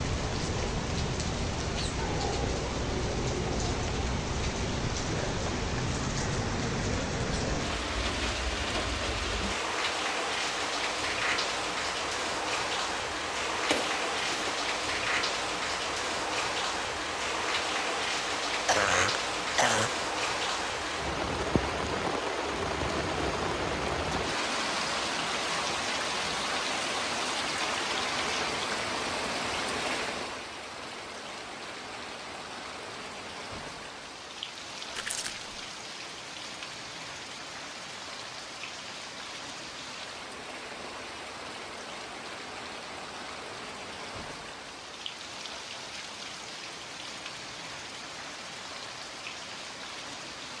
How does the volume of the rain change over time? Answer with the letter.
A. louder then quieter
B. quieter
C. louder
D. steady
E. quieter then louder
B.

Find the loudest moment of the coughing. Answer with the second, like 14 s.
19 s.